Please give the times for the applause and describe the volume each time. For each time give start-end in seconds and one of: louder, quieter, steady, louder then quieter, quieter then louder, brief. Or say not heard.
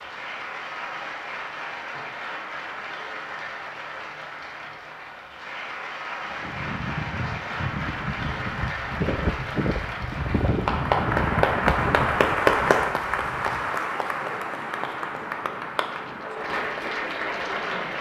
0.0-17.9 louder then quieter.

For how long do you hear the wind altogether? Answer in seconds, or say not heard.
12 s.